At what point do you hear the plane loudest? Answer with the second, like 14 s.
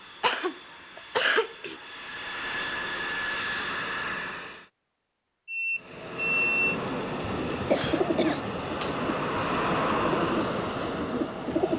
10 s.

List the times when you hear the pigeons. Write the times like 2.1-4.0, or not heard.
7.2-11.7.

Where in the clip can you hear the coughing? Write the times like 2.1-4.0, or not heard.
0.2-1.8, 7.6-8.9.